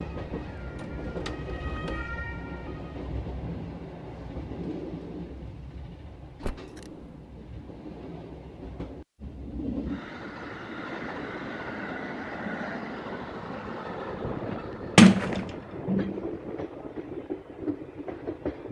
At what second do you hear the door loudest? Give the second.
15 s.